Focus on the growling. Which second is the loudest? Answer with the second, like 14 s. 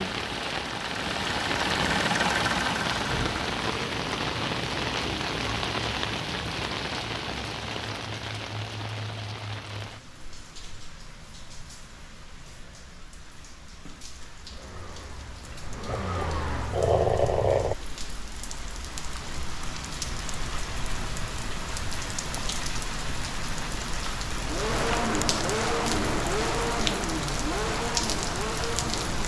17 s.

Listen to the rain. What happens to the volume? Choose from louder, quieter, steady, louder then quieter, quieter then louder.
quieter then louder.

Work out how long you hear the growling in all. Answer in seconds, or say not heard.
2 s.